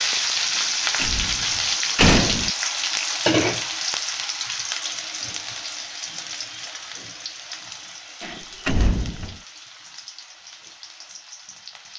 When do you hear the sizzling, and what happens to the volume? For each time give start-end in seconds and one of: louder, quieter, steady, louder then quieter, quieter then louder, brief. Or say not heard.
0.0-11.9 quieter.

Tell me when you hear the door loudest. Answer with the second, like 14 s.
2 s.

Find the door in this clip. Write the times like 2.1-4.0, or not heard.
0.9-2.5, 8.2-9.3.